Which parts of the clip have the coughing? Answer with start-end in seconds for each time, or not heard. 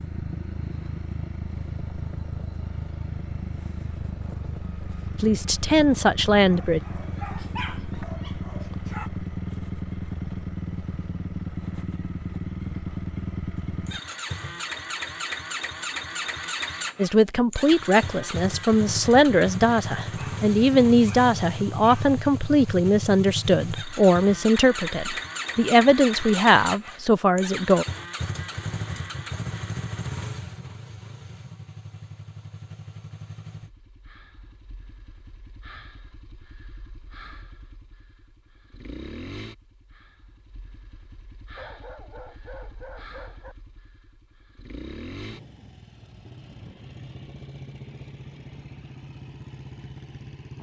not heard.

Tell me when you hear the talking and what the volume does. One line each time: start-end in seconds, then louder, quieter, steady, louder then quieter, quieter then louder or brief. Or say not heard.
5.2-6.8 brief
16.9-27.9 steady.